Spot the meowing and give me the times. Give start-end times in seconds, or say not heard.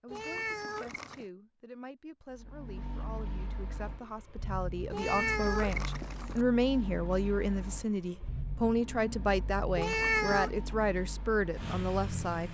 0.1-1.2, 4.9-6.5, 9.8-10.5.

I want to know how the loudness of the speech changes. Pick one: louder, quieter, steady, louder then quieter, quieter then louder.
louder.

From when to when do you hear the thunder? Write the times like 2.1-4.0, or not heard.
not heard.